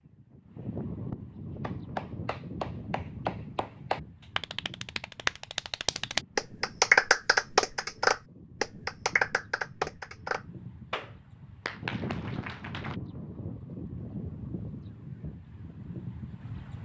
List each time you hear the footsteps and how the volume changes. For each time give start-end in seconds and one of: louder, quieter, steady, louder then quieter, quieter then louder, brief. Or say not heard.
not heard.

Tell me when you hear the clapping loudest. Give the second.
7 s.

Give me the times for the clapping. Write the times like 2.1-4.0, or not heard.
1.6-12.9.